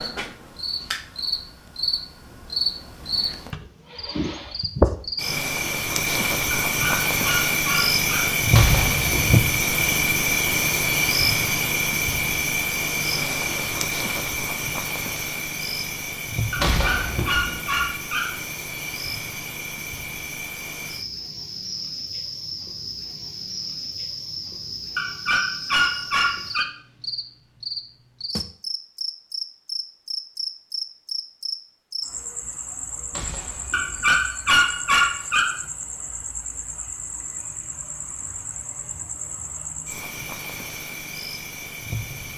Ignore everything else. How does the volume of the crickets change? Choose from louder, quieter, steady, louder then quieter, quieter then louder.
quieter.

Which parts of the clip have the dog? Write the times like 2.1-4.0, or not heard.
6.7-8.4, 16.6-18.4, 24.9-26.6, 33.7-35.6.